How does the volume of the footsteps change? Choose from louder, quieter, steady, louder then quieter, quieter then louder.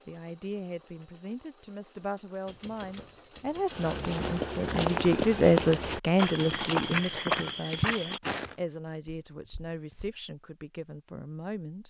quieter.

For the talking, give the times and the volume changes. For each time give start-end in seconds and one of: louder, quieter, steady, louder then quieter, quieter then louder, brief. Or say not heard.
0.1-11.8 louder then quieter.